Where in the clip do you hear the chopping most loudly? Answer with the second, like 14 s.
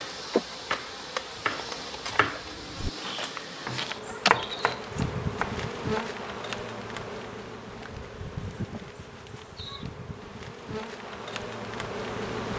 4 s.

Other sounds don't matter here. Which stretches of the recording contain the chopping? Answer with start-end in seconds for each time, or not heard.
0.0-6.2.